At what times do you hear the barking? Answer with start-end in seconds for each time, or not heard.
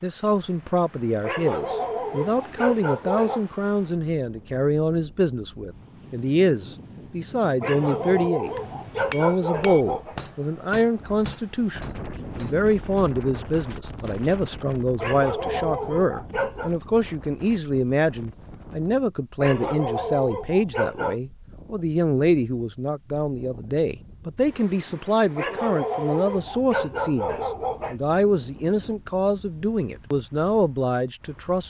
1.2-3.5, 7.6-10.2, 14.9-16.7, 19.4-21.1, 25.4-27.9.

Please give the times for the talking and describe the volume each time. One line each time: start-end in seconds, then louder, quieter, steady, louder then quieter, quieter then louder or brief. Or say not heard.
0.0-31.6 steady.